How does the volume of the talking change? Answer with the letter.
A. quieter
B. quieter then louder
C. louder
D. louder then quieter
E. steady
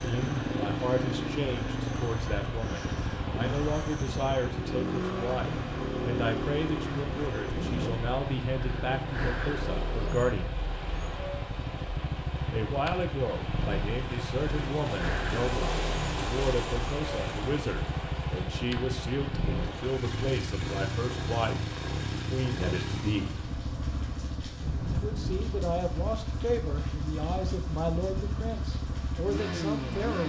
E.